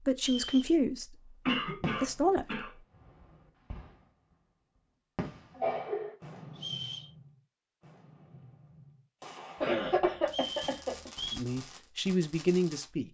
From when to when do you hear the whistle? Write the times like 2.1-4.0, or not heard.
0.1-0.8, 6.5-7.1, 10.2-11.4.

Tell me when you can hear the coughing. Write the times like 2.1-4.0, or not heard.
1.4-2.7, 5.5-6.2, 9.6-11.1.